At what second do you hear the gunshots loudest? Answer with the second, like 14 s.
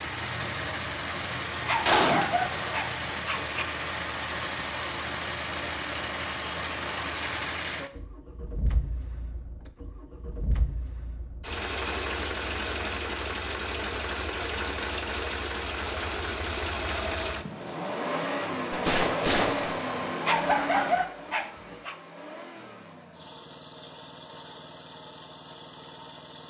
2 s.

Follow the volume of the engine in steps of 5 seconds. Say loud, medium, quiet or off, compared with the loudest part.
loud, loud, loud, loud, medium, quiet.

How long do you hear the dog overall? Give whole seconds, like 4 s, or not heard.
4 s.